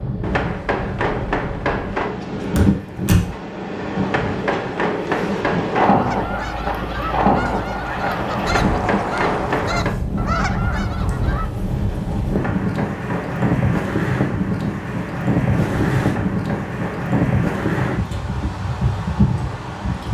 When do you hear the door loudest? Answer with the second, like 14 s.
3 s.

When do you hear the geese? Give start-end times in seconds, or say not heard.
6.0-11.7.